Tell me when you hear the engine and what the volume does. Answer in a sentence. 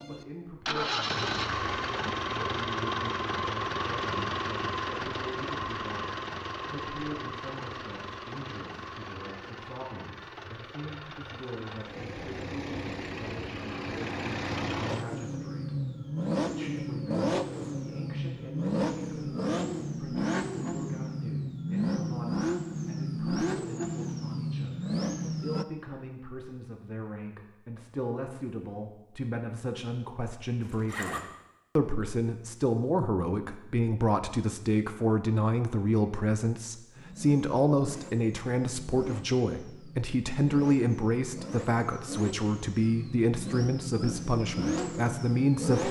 The engine can be heard from 0.0 to 25.6 s, getting quieter then louder; and from 37.0 to 45.8 s, getting louder.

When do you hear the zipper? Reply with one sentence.
You can hear the zipper from 30.6 to 31.2 s.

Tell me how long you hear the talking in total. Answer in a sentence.
You can hear the talking for 46 seconds altogether.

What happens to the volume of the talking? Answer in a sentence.
The loudness of the talking goes up.